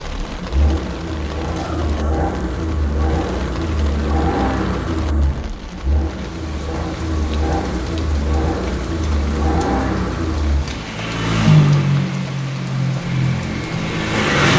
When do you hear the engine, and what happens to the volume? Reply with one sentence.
The engine can be heard from 0.0 to 14.5 s, getting louder.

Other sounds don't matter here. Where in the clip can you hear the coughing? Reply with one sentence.
The coughing can be heard from 1.6 to 2.2 s.